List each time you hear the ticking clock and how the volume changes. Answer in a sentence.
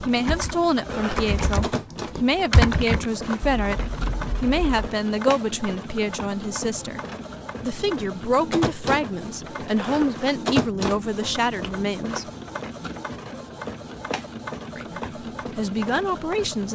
You can't hear the ticking clock here.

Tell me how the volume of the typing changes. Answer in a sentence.
The volume of the typing goes up, then down.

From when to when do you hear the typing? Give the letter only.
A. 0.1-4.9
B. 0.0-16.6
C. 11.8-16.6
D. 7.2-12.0
A.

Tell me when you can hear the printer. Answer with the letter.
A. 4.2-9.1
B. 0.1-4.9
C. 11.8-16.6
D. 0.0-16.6
D.